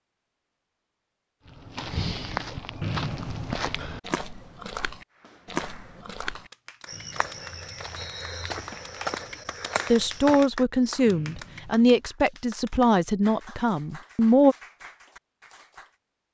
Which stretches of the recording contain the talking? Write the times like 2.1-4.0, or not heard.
9.9-14.6.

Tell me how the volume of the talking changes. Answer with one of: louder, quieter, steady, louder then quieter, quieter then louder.
quieter.